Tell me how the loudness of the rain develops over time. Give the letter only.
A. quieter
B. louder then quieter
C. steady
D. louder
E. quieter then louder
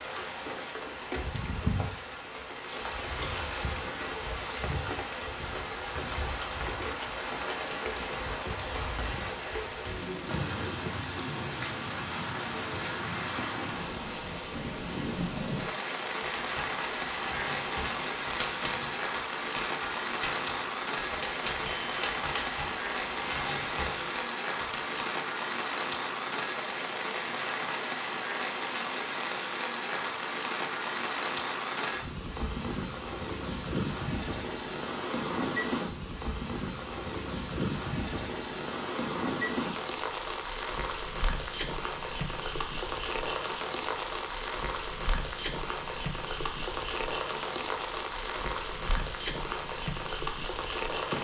C.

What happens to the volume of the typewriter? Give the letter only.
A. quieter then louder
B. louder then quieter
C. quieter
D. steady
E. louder
D.